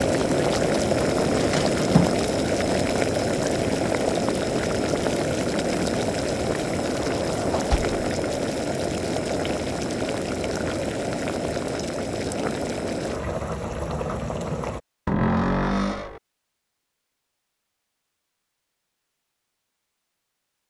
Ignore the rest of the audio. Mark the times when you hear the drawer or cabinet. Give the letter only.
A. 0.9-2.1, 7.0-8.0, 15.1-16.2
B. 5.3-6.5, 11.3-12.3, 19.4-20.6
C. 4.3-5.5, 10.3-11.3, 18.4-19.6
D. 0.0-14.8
A.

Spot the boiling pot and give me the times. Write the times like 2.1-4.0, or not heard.
0.0-14.8.